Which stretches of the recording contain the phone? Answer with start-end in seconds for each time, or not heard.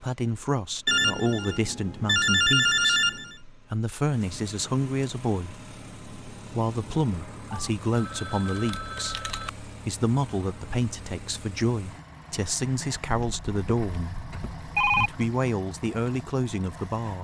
0.8-3.4, 7.5-9.5, 13.2-15.1.